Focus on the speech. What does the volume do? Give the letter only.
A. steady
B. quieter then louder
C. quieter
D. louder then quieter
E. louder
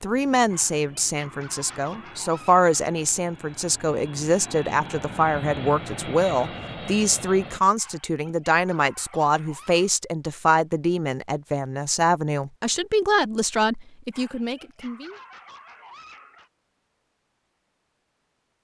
A.